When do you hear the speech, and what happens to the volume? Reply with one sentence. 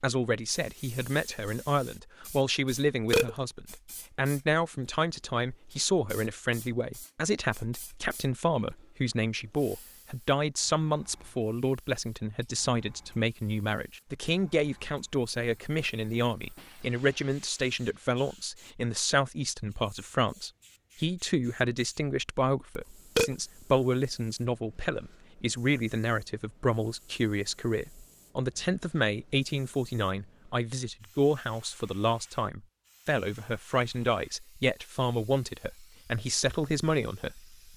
You can hear the speech from 0.0 to 37.5 s, at a steady volume.